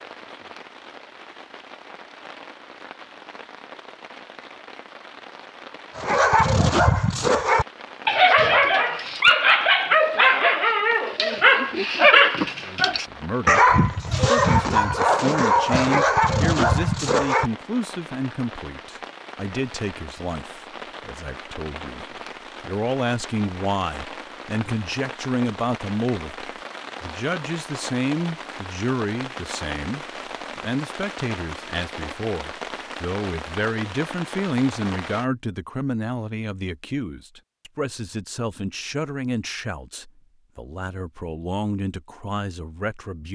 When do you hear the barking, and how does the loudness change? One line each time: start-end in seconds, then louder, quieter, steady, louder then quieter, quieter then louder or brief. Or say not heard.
6.0-17.5 steady.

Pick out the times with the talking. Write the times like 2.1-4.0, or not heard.
12.7-43.3.